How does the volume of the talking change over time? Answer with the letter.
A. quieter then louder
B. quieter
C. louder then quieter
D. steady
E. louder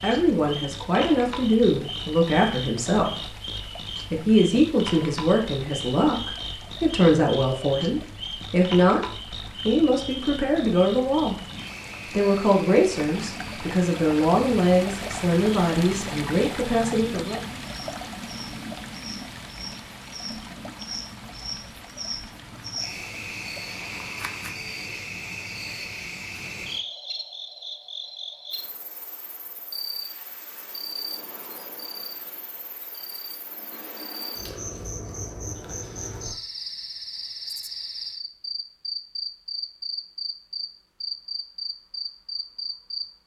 D.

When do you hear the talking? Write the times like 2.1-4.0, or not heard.
0.0-11.3, 12.1-17.4.